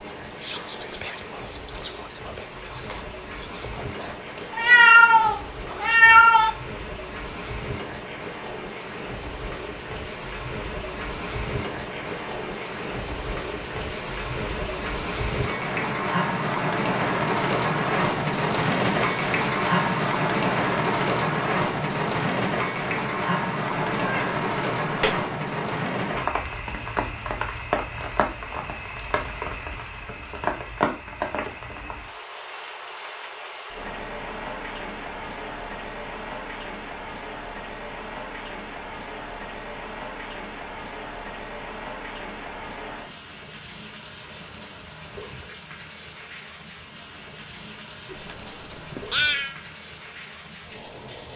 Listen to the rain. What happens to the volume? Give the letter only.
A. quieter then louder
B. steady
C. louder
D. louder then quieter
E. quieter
D.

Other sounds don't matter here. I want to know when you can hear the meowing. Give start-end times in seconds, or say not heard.
4.5-6.5, 23.9-25.2, 48.1-49.5.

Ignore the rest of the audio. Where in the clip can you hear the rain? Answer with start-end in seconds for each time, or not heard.
0.0-51.3.